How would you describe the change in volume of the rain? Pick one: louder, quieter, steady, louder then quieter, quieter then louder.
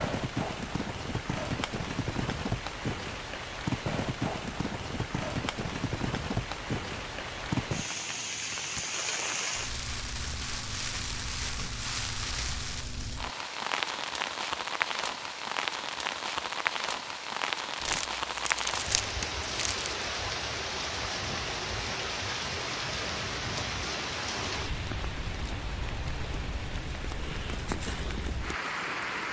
steady.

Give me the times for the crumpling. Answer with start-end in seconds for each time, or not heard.
17.8-19.9.